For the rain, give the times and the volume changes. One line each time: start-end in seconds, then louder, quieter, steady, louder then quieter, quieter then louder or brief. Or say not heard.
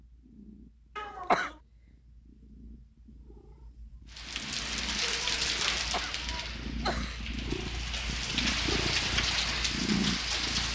4.1-10.6 quieter then louder.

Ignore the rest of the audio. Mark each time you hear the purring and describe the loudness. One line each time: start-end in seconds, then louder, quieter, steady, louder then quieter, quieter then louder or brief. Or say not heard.
0.0-10.6 louder.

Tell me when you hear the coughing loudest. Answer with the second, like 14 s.
1 s.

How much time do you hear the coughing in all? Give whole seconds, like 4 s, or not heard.
2 s.